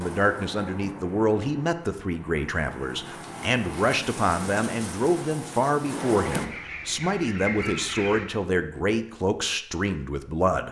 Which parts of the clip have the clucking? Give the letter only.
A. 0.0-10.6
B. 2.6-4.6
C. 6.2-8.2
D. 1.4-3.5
C.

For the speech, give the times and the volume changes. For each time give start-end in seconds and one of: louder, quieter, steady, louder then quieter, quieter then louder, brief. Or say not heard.
0.0-10.6 steady.